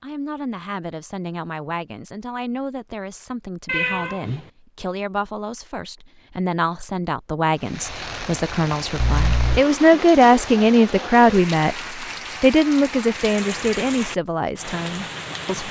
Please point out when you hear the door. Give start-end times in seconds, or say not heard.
not heard.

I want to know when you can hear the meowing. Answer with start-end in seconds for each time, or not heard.
3.6-4.5, 8.9-9.7.